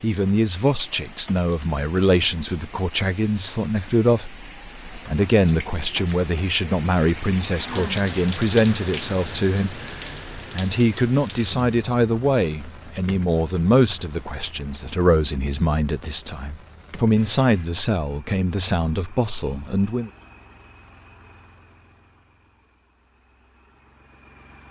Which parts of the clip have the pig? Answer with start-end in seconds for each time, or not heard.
not heard.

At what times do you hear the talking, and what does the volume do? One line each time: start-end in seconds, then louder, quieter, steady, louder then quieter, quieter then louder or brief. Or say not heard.
0.0-20.1 steady.